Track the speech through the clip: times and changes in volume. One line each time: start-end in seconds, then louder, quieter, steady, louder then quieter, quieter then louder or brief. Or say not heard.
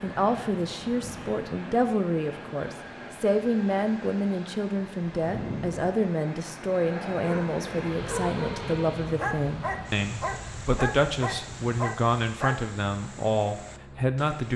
0.0-14.5 steady.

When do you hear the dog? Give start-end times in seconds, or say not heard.
7.1-12.6.